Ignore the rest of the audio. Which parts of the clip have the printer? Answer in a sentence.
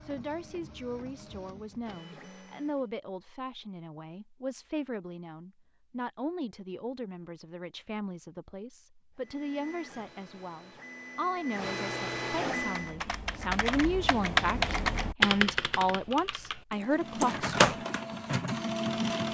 The printer can be heard from 0.0 to 2.9 s, from 9.2 to 12.9 s and from 16.9 to 19.3 s.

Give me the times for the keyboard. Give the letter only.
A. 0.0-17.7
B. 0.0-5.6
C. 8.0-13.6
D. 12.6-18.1
D.